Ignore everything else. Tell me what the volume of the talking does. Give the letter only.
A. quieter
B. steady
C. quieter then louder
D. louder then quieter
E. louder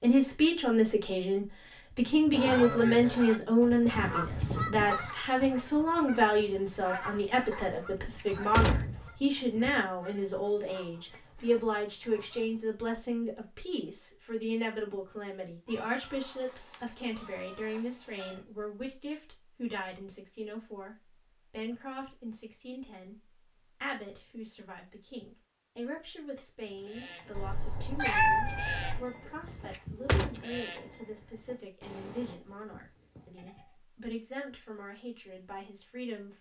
A.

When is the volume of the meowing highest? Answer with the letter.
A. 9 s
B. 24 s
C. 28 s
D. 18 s
C.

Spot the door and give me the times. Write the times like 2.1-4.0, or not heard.
7.8-9.7, 29.4-30.3.